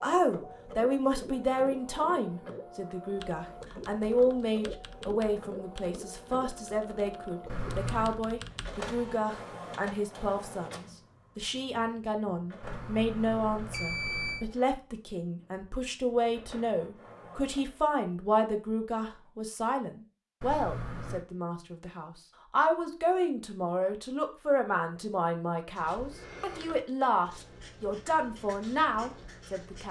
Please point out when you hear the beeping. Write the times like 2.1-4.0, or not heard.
7.5-8.2, 12.6-14.4, 20.4-21.2.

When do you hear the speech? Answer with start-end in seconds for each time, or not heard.
0.0-29.8.